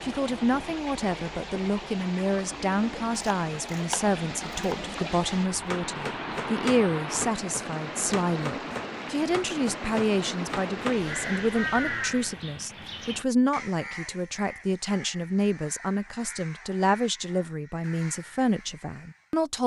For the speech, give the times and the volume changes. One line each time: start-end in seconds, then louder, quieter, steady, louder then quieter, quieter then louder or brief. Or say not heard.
0.0-19.6 steady.